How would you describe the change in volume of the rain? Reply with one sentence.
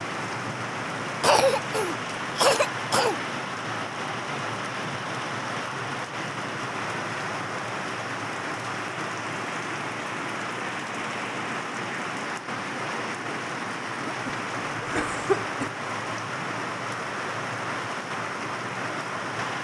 The volume of the rain stays about the same.